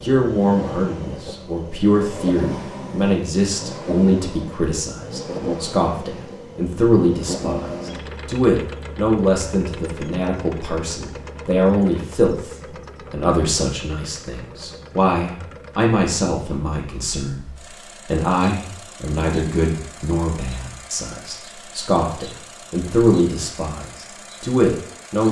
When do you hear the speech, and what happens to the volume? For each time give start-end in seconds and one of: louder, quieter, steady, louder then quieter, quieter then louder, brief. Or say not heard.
0.0-25.2 steady.